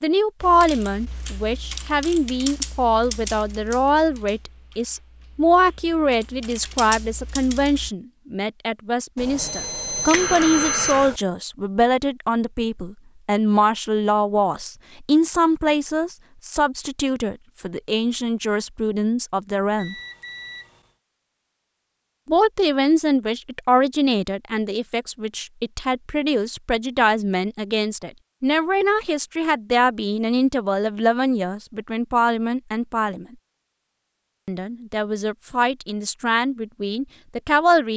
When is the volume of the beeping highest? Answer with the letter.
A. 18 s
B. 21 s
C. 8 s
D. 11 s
D.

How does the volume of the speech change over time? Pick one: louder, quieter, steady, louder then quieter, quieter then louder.
steady.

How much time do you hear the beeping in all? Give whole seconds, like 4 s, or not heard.
3 s.